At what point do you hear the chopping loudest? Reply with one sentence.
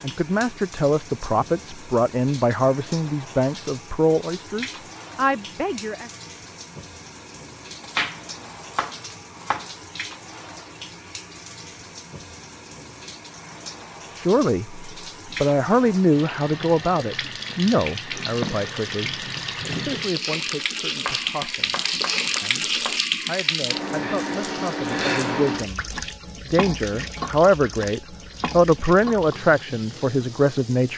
The volume of the chopping peaks at 8 seconds.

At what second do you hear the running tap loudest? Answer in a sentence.
The loudest moment of the running tap is at 23 seconds.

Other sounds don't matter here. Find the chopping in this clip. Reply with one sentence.
The chopping can be heard from 7.8 to 9.7 s and from 21.1 to 23.0 s.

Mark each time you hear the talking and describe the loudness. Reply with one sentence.
The talking can be heard from 0.0 to 6.1 s, at a steady volume; and from 14.2 to 30.9 s, getting quieter then louder.